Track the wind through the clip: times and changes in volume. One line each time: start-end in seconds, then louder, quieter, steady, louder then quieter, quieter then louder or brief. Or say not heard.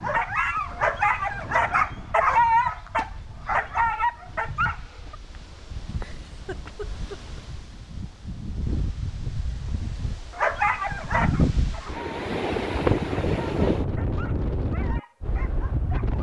0.0-16.1 louder.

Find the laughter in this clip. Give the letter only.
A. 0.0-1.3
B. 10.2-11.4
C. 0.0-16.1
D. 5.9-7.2
D.